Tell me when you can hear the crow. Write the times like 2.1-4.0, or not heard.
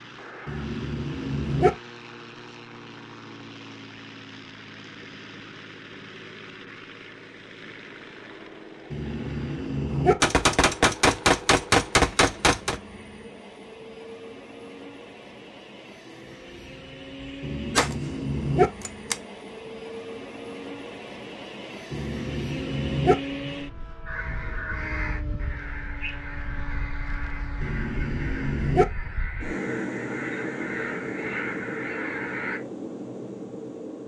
24.1-32.6.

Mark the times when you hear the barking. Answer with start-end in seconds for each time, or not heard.
0.5-1.7, 8.9-10.2, 17.4-18.7, 21.9-23.1, 27.6-28.9.